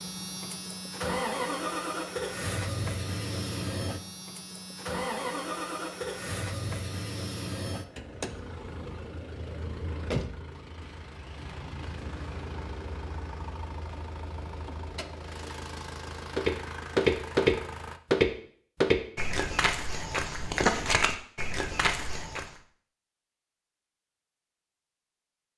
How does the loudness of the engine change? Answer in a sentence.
The volume of the engine goes down.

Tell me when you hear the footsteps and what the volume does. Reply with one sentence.
The footsteps can be heard from 16.4 to 22.5 s, getting quieter.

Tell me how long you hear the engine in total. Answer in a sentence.
You can hear the engine for 18 seconds altogether.